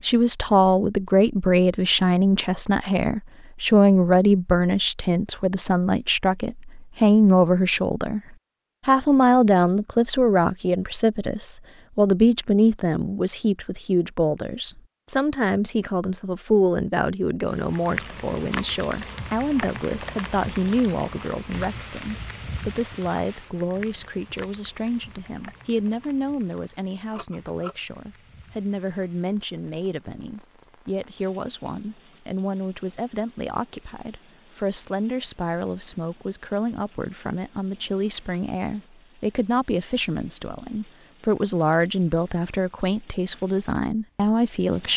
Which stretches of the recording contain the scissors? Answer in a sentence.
The scissors can be heard from 27.1 to 27.8 s.